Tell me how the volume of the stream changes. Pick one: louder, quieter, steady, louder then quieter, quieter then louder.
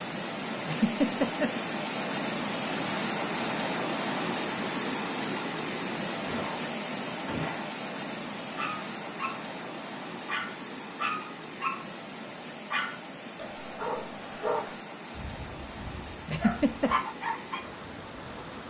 quieter.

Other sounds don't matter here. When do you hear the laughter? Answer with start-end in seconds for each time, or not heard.
0.7-1.5, 16.2-16.9.